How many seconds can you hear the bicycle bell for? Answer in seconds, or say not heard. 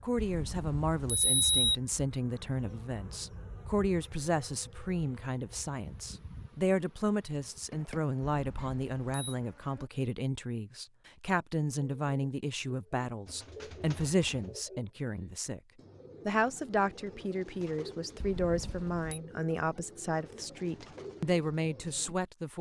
4 s.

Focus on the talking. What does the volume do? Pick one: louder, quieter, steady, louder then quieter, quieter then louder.
steady.